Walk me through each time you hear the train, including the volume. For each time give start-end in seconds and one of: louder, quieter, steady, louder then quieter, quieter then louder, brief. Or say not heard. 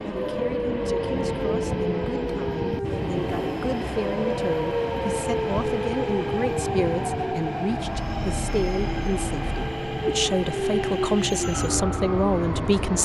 0.0-13.0 steady.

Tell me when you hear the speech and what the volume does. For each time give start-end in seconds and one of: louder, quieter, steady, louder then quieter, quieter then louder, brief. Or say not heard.
0.1-13.0 louder.